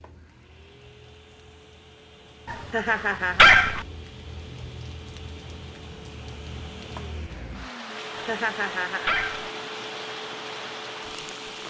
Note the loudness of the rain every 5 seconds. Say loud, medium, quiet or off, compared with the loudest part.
medium, loud, loud.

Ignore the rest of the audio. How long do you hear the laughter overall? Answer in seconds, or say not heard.
2 s.